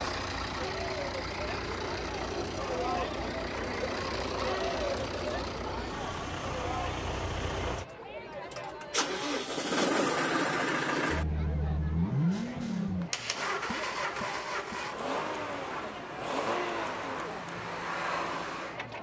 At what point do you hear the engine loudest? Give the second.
10 s.